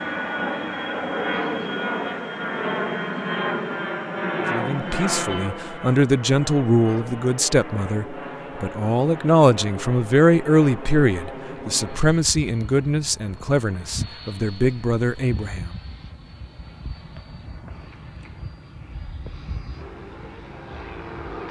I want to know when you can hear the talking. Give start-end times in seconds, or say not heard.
4.5-15.7.